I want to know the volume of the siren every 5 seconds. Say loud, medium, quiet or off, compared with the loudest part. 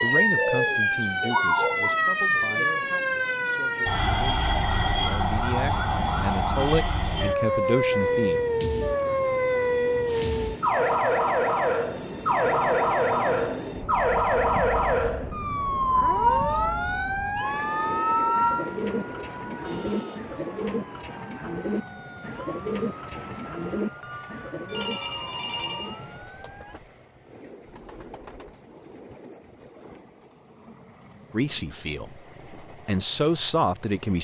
loud, loud, loud, loud, quiet, quiet, off.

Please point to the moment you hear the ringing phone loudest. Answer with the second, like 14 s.
25 s.